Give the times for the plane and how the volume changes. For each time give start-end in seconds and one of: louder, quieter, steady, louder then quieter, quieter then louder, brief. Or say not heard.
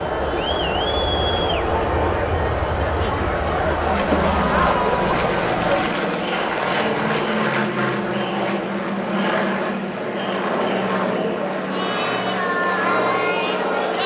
0.0-14.0 steady.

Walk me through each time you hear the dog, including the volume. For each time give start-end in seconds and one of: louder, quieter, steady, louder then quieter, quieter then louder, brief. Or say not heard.
not heard.